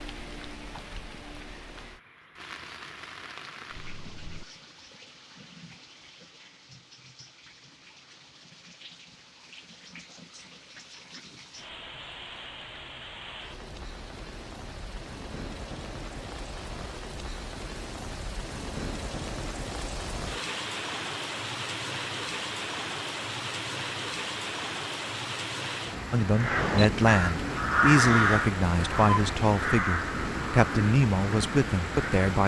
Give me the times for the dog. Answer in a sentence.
You can't hear the dog here.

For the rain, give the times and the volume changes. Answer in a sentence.
You can hear the rain from 0.0 to 32.4 s, getting louder.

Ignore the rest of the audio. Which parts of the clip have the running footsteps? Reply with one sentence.
You can't hear the running footsteps here.